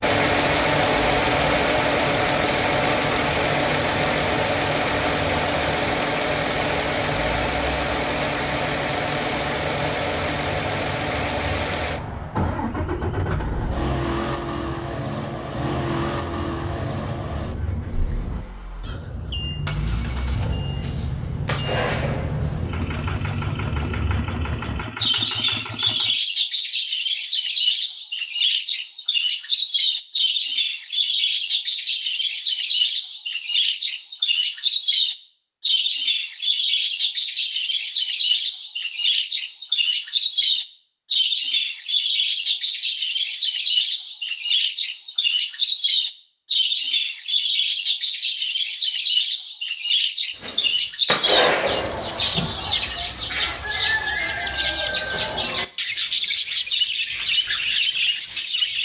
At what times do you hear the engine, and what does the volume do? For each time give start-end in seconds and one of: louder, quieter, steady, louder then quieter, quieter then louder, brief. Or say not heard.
0.0-26.1 quieter.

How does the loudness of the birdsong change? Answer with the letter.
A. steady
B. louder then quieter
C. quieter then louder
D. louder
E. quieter
D.